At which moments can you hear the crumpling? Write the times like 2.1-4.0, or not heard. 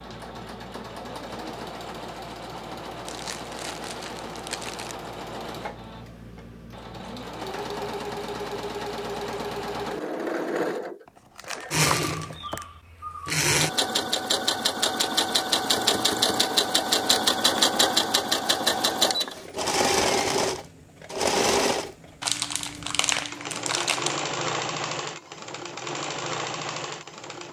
3.0-5.0, 11.1-12.7, 22.2-24.2.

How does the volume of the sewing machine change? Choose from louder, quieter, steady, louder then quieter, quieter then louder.
louder then quieter.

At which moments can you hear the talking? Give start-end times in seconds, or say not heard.
not heard.